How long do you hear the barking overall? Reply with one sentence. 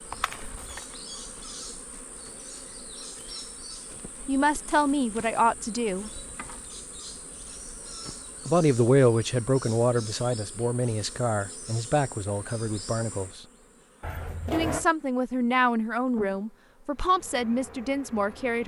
The barking can't be heard in this clip.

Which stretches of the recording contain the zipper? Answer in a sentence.
The zipper can be heard from 0.1 to 0.8 s and from 14.0 to 14.8 s.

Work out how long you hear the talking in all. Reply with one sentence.
The talking can be heard for 11 seconds in total.